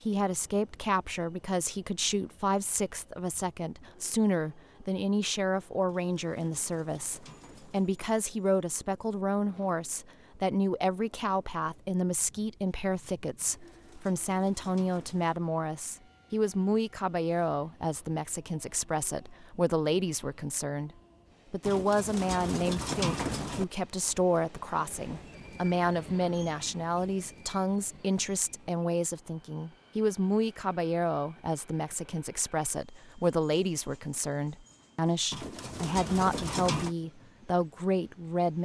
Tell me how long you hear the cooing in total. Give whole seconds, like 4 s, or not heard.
8 s.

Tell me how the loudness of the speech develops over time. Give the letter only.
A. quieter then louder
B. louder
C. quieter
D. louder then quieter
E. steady
E.